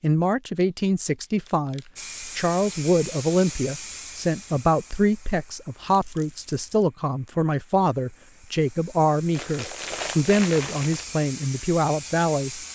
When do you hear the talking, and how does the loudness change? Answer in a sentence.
The talking can be heard from 0.0 to 12.6 s, at a steady volume.